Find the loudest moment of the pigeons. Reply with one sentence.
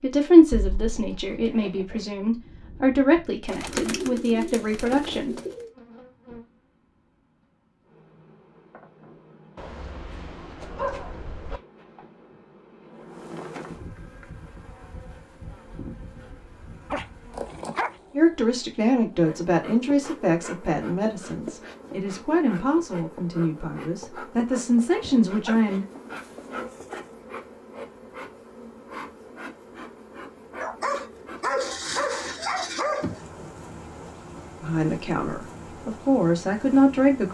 The loudest moment of the pigeons is at 4 seconds.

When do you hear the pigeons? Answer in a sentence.
The pigeons can be heard from 3.5 to 5.7 s.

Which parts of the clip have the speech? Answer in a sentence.
You can hear the speech from 0.0 to 5.3 s, from 18.1 to 25.9 s and from 34.6 to 37.2 s.